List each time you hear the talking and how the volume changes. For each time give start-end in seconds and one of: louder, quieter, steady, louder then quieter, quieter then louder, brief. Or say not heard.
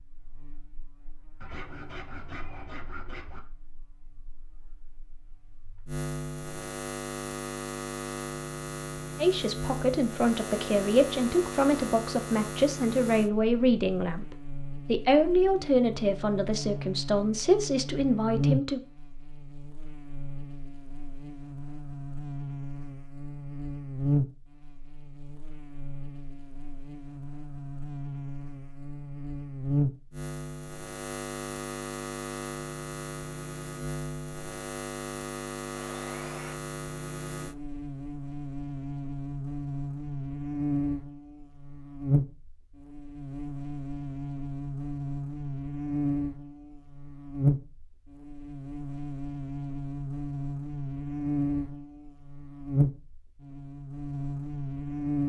9.2-18.8 steady.